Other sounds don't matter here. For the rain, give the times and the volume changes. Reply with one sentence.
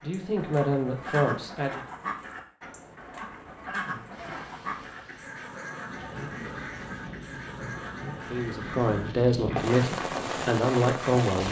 You can hear the rain from 4.1 to 11.4 s, getting louder.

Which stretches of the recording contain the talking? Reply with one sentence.
You can hear the talking from 0.0 to 1.8 s and from 8.3 to 11.4 s.